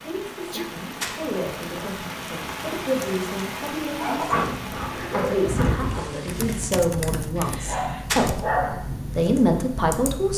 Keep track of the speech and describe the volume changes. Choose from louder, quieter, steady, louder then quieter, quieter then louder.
louder.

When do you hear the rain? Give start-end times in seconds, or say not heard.
0.0-6.8.